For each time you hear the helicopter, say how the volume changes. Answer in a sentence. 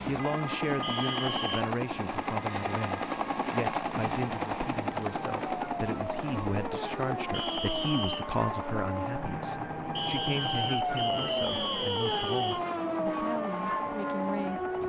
The helicopter can be heard from 0.0 to 14.8 s, getting quieter.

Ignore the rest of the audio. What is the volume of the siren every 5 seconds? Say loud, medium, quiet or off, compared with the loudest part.
medium, medium, loud.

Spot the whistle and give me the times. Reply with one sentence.
The whistle can be heard from 0.8 to 1.6 s, from 7.3 to 8.3 s and from 9.9 to 12.6 s.